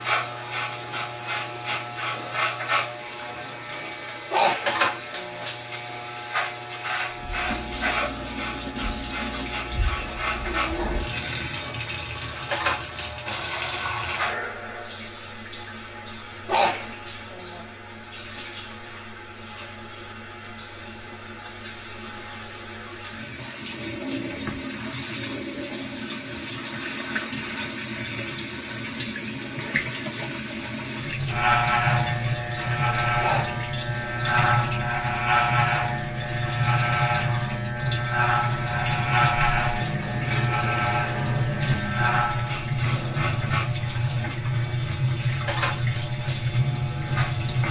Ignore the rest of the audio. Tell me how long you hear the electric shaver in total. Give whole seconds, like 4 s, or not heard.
31 s.